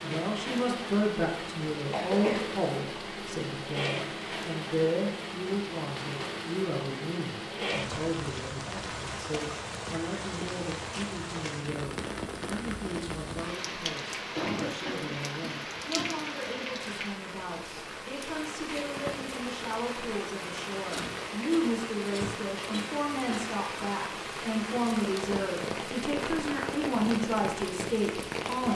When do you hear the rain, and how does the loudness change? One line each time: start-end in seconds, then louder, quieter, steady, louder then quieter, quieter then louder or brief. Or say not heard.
0.0-28.7 steady.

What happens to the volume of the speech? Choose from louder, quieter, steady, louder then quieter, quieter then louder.
quieter then louder.